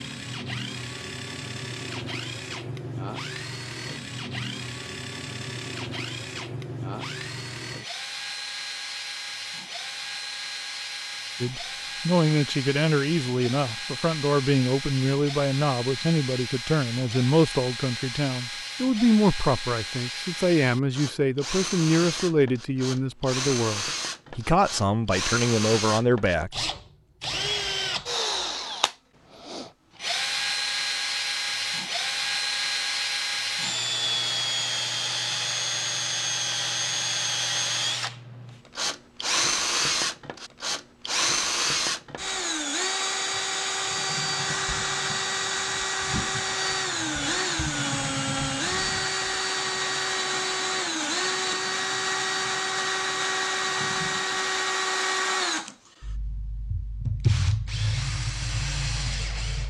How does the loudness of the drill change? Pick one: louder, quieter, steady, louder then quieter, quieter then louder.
louder.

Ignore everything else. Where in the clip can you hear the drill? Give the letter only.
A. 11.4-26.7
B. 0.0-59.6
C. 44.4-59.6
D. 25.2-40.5
B.